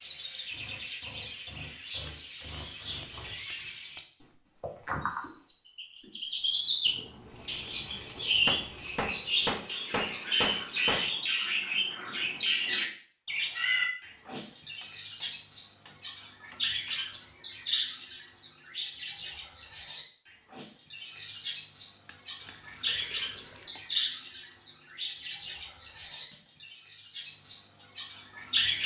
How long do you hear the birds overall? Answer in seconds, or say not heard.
29 s.